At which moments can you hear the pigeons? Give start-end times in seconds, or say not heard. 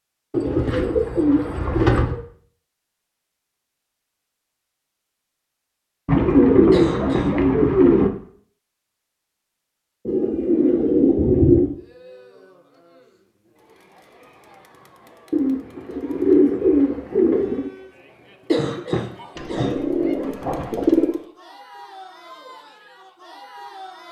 0.3-2.2, 6.0-8.1, 10.1-11.7, 15.3-17.7, 19.4-21.2.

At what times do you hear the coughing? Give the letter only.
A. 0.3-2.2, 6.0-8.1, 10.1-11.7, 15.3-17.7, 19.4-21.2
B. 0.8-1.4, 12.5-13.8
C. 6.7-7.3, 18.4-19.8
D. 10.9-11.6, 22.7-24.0
C.